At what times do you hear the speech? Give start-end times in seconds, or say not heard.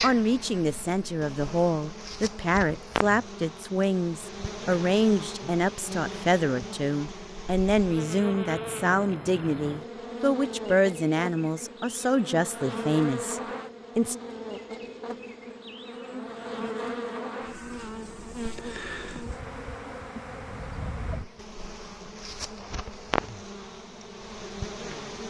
0.0-14.2.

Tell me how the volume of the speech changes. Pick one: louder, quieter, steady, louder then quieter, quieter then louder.
steady.